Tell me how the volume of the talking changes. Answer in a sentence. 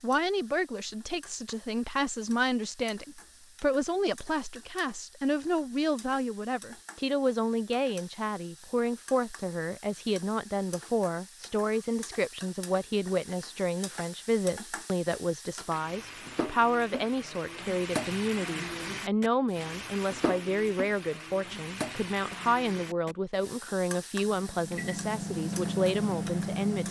The loudness of the talking stays about the same.